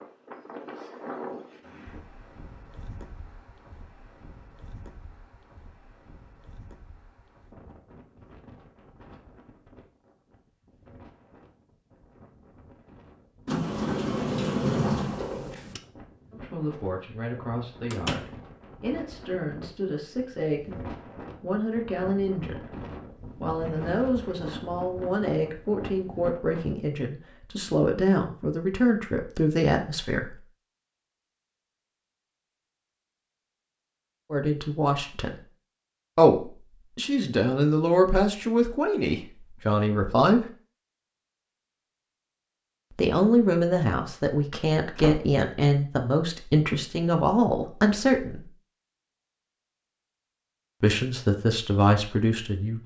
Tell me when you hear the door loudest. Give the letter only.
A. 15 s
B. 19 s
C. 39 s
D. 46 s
A.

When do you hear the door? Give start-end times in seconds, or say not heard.
13.4-15.8, 17.9-18.3, 45.0-45.4.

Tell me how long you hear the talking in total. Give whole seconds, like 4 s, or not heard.
27 s.